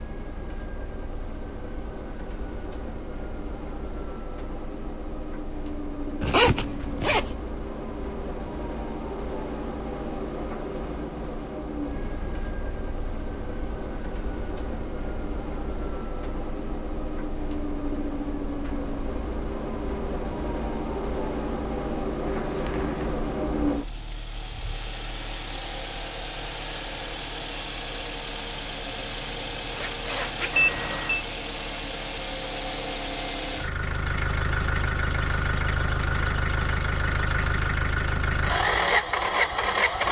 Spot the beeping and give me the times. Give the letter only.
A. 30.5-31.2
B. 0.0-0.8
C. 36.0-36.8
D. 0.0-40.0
A.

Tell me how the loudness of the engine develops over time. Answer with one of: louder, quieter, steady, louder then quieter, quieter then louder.
louder.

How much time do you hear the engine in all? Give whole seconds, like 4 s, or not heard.
40 s.